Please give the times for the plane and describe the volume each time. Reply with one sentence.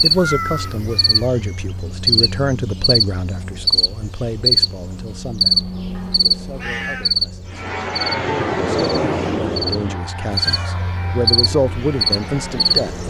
You can hear the plane from 7.5 to 13.0 s, getting quieter.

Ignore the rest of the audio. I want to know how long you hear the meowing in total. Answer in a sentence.
The meowing can be heard for 3 seconds in total.